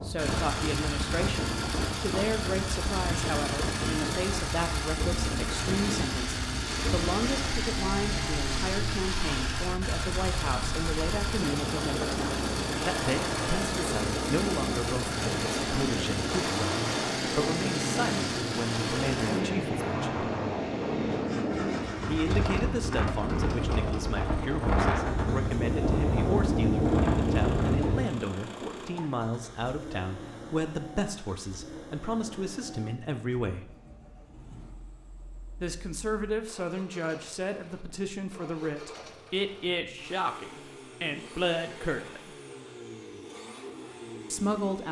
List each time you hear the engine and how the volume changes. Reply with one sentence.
The engine can be heard from 0.0 to 44.8 s, getting quieter.